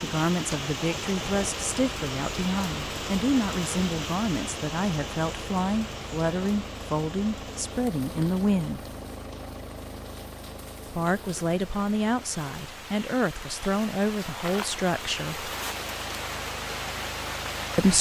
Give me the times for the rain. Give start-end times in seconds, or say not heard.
0.0-17.9.